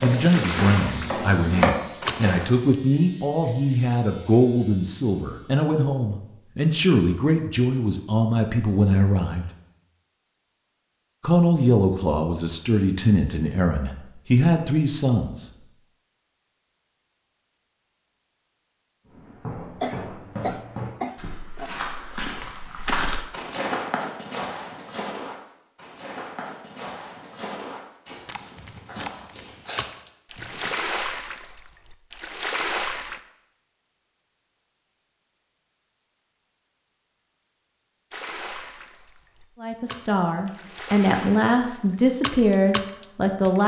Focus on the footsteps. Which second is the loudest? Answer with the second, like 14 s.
2 s.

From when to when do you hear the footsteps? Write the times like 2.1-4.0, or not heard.
0.0-2.5, 19.1-30.7.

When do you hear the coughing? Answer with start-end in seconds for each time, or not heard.
19.8-21.7.